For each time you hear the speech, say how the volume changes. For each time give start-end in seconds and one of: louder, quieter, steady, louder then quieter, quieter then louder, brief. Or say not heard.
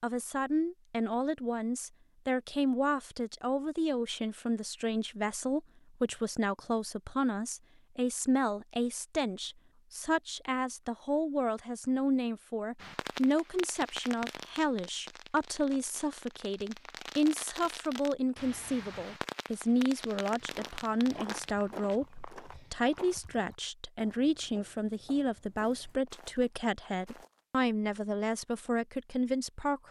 0.0-29.8 steady.